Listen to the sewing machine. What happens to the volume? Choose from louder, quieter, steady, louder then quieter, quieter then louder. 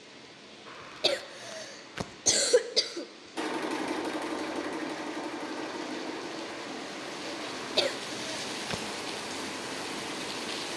quieter.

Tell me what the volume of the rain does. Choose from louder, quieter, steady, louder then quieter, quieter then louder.
louder.